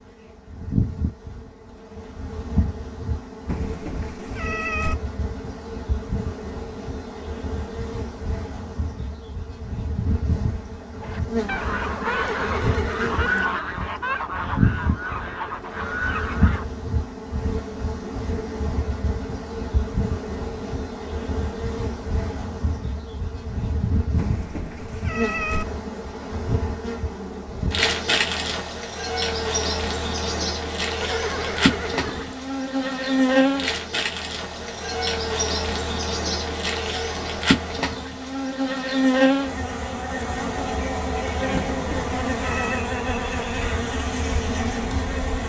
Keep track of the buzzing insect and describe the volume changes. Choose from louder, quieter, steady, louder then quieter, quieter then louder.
louder.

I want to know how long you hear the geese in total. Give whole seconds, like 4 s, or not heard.
6 s.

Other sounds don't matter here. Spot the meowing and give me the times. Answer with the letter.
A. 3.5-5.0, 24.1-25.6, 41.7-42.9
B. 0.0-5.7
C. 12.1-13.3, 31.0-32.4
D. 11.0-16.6
A.